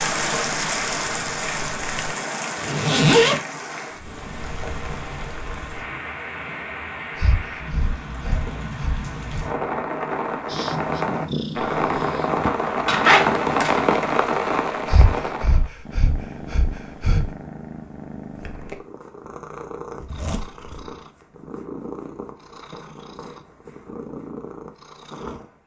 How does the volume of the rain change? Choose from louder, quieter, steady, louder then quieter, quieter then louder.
quieter then louder.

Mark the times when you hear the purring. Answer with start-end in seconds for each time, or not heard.
0.1-2.1, 10.4-12.5, 15.8-25.6.